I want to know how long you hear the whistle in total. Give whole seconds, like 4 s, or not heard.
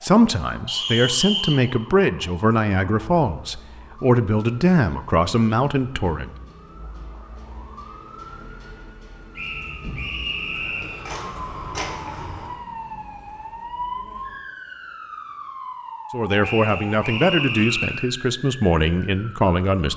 4 s.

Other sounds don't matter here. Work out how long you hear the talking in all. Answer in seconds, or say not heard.
10 s.